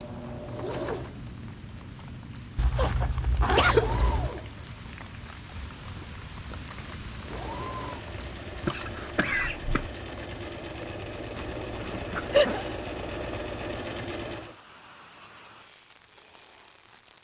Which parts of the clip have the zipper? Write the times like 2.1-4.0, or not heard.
2.5-4.3, 11.3-12.6.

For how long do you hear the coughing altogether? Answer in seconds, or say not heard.
3 s.